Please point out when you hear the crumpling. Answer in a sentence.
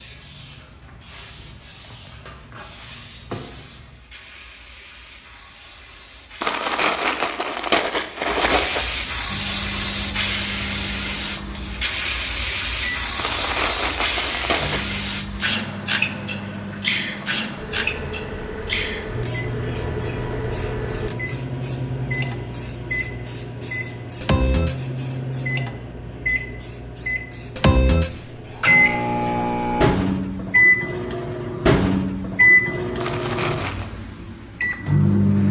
The crumpling can be heard from 6.4 to 8.9 s, from 13.2 to 14.9 s and from 33.0 to 33.9 s.